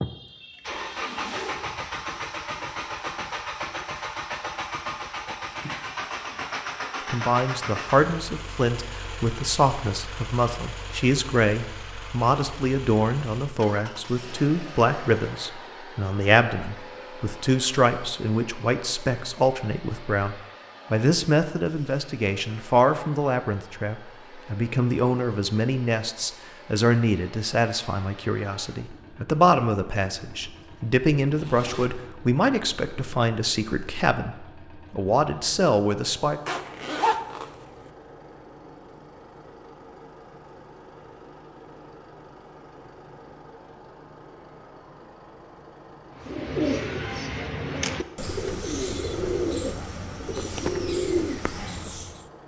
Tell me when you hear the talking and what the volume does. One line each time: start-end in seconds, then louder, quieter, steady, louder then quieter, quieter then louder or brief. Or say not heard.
7.0-36.4 steady.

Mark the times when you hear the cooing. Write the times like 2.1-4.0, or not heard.
46.1-52.2.